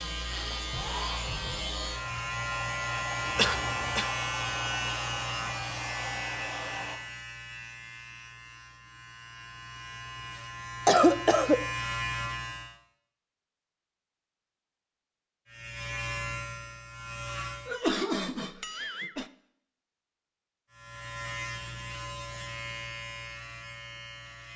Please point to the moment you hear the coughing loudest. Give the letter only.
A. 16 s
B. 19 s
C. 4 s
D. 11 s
D.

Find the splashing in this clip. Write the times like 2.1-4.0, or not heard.
not heard.